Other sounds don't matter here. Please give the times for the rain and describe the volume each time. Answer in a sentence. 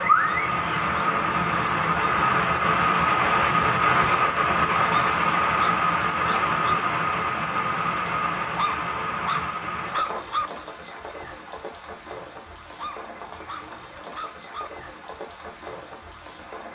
You can hear the rain from 0.0 to 16.7 s, getting quieter.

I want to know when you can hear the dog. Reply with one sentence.
You can hear the dog from 0.2 to 2.1 s, from 4.8 to 6.8 s, from 8.6 to 10.5 s and from 12.8 to 14.7 s.